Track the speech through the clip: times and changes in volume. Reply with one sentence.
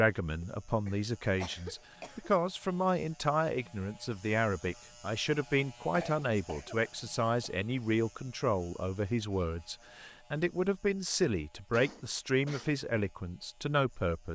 The speech can be heard from 0.0 to 14.3 s, at a steady volume.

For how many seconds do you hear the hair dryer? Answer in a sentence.
You can't hear the hair dryer here.